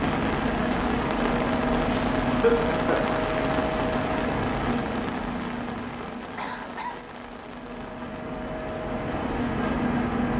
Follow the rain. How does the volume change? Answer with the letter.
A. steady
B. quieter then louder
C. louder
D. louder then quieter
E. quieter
E.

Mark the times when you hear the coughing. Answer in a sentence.
The coughing can be heard from 2.2 to 3.1 s and from 6.2 to 7.0 s.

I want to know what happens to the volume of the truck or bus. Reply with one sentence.
The volume of the truck or bus goes down, then up.